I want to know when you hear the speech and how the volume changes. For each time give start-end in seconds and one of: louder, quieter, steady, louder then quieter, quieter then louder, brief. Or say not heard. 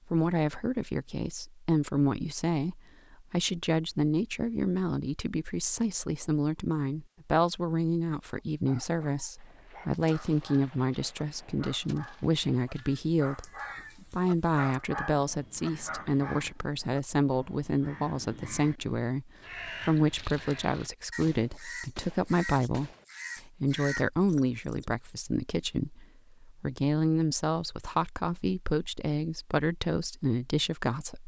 0.1-31.2 steady.